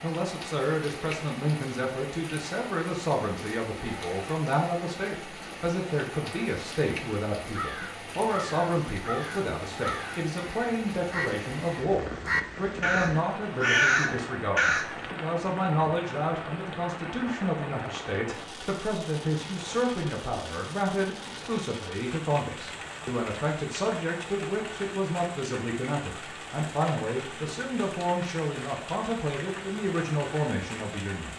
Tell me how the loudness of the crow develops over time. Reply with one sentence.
The loudness of the crow goes up.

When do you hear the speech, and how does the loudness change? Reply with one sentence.
You can hear the speech from 0.0 to 31.3 s, at a steady volume.